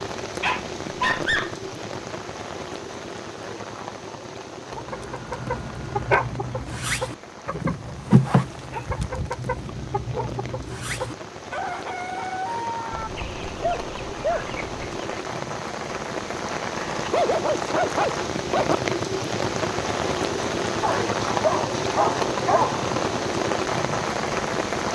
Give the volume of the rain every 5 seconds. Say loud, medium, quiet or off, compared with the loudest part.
medium, quiet, medium, loud, loud.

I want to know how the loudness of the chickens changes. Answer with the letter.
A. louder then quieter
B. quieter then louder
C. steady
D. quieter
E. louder
A.